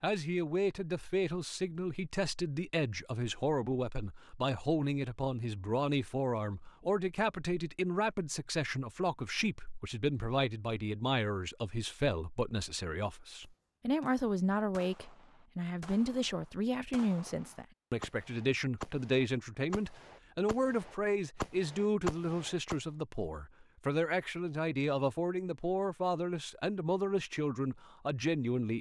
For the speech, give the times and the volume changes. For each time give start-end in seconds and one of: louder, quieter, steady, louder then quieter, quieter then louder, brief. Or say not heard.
0.0-28.7 steady.